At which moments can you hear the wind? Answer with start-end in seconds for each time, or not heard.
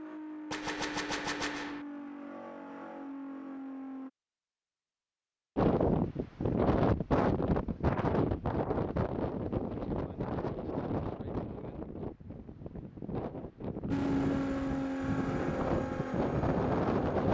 5.5-17.2.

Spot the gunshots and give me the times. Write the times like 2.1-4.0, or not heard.
0.5-1.9.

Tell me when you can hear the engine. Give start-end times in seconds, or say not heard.
0.0-4.1, 13.9-17.2.